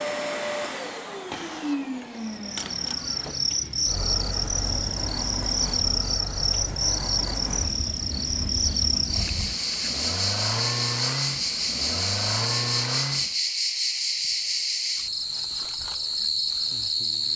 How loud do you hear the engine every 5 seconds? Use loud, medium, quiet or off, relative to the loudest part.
loud, medium, loud, off.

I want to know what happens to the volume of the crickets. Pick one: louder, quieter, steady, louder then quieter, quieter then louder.
steady.